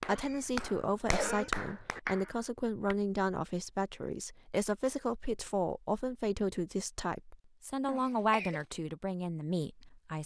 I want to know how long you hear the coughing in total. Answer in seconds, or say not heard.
2 s.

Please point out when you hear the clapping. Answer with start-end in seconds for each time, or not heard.
0.0-3.0.